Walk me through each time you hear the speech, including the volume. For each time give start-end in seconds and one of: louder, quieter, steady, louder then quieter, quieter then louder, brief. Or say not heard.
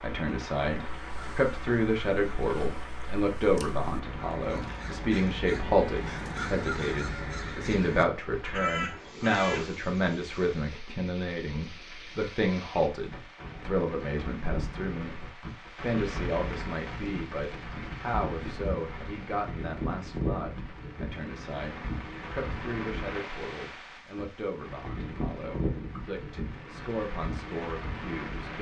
0.0-28.5 quieter.